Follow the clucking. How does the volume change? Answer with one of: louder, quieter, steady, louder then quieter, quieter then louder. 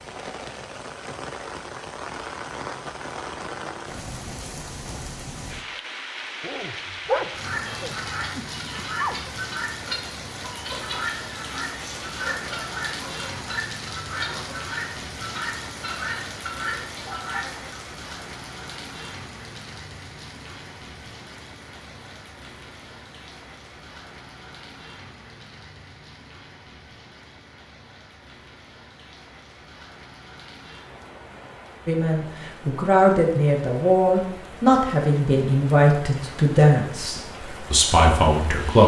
steady.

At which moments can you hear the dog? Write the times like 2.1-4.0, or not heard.
6.4-9.2.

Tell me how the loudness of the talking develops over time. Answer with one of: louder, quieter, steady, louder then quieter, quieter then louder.
steady.